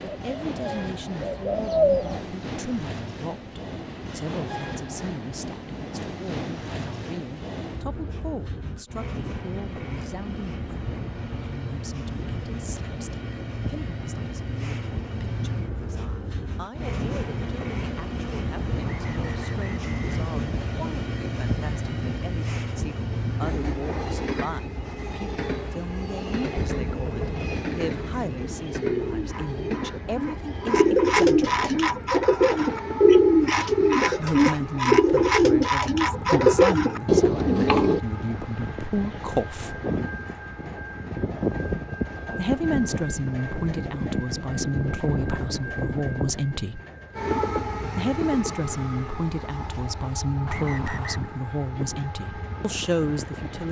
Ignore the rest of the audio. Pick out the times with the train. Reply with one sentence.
You can hear the train from 0.0 to 53.6 s.